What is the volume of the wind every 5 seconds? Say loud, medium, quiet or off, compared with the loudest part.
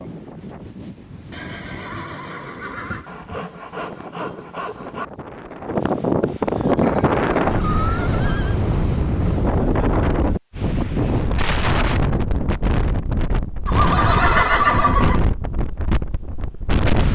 quiet, loud, loud, loud.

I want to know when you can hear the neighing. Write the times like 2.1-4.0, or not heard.
1.3-3.1, 6.8-8.6, 13.7-15.2.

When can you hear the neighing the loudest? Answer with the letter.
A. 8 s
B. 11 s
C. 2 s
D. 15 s
D.